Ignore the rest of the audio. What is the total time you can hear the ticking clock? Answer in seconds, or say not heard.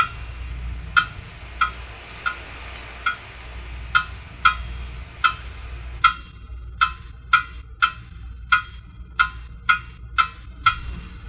11 s.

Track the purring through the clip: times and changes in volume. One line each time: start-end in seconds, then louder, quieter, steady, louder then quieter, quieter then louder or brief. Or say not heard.
not heard.